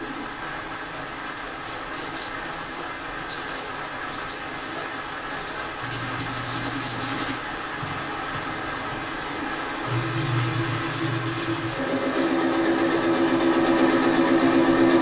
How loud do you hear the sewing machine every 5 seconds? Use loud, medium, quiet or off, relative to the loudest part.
quiet, quiet, loud.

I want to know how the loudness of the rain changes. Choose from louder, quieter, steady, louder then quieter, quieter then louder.
steady.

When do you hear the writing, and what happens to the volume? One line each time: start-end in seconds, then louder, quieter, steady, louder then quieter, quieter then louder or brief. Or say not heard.
1.9-9.1 louder then quieter.